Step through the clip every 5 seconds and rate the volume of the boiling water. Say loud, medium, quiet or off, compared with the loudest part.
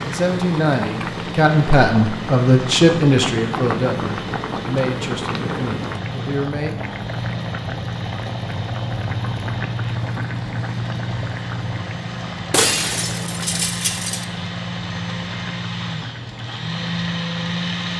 loud, loud, loud, medium.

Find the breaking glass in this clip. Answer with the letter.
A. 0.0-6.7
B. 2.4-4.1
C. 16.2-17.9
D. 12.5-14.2
D.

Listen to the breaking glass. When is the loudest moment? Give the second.
13 s.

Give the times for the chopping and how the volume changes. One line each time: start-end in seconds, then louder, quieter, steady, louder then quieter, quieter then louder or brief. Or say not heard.
not heard.